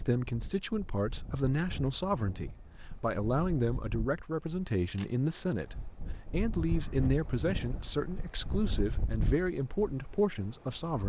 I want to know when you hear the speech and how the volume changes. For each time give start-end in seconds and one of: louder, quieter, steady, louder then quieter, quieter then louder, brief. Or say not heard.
0.0-11.0 steady.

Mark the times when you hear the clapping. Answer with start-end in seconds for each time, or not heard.
not heard.